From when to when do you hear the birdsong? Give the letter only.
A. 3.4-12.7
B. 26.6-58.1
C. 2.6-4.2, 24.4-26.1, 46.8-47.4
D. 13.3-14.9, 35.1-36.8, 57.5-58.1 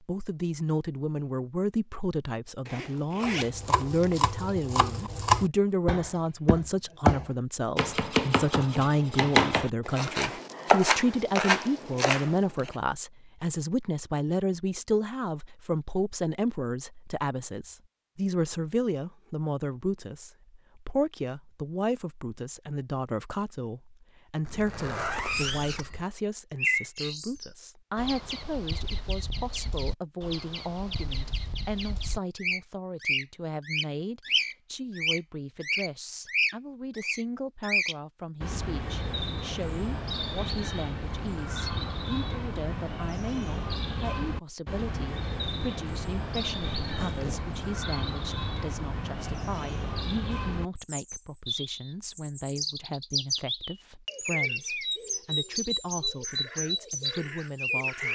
B.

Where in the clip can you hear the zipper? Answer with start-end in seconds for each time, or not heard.
2.6-4.2, 24.4-26.1, 46.8-47.4.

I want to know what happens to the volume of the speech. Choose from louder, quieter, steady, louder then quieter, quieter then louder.
quieter.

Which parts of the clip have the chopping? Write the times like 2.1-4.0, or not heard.
3.4-12.7.